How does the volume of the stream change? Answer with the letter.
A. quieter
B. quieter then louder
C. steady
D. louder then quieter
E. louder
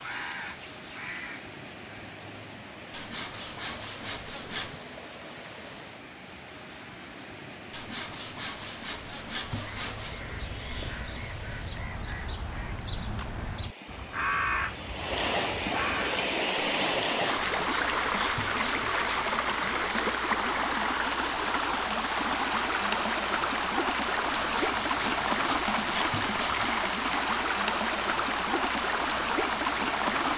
E.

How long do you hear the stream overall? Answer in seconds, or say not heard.
30 s.